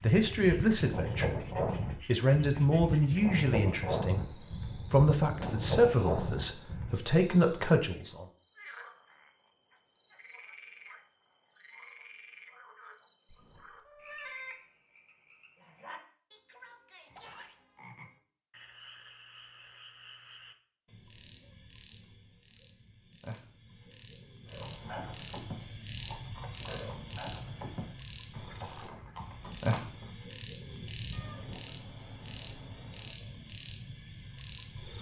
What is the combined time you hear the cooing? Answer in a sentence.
You can't hear the cooing here.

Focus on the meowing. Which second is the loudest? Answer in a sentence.
The volume of the meowing peaks at 14 seconds.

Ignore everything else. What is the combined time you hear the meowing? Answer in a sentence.
You can hear the meowing for 3 seconds altogether.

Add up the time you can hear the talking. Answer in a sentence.
The talking can be heard for 8 seconds in total.